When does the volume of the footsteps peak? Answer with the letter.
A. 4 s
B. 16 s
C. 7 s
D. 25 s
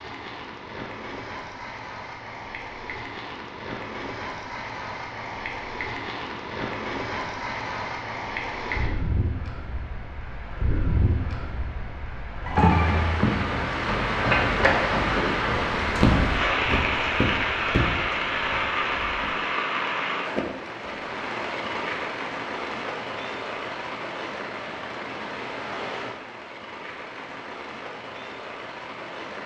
B.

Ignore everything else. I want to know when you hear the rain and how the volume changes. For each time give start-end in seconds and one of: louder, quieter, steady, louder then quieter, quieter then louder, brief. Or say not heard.
0.0-29.4 louder then quieter.